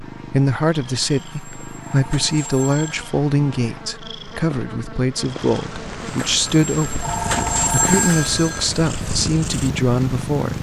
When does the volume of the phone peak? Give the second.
8 s.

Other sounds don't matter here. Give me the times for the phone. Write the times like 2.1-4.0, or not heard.
1.1-3.0, 6.2-8.7.